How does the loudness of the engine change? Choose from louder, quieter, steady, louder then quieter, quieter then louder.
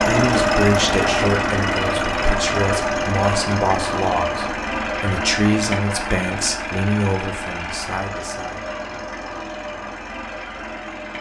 quieter.